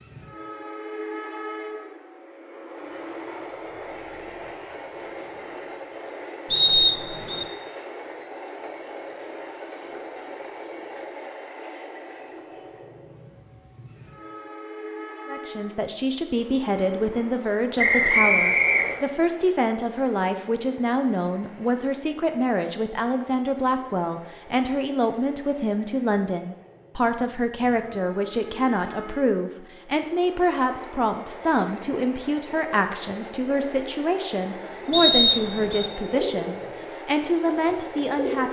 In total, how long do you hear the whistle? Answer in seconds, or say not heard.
3 s.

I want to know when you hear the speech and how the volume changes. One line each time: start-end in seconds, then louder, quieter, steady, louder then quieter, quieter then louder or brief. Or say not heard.
15.2-38.4 steady.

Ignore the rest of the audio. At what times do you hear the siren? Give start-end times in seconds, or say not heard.
not heard.